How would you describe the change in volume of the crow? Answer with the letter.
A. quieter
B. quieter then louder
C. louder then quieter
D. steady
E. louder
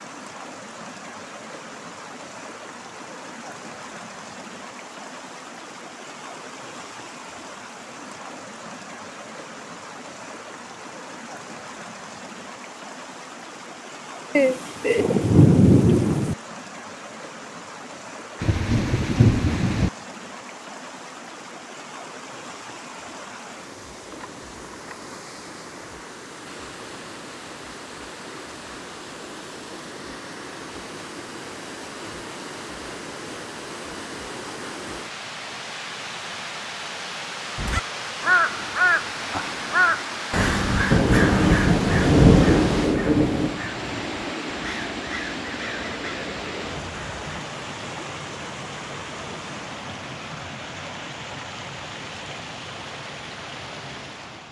A.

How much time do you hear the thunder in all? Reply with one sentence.
You can hear the thunder for 6 seconds altogether.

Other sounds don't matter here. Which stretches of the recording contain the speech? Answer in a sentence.
The speech can't be heard in this clip.